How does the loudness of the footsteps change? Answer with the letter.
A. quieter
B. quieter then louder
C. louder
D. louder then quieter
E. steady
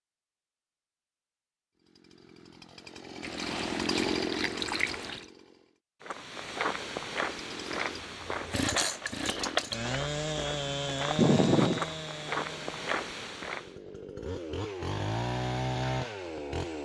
B.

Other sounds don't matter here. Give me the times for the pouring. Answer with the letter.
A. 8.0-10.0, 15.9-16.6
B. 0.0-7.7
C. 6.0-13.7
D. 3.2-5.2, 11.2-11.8
D.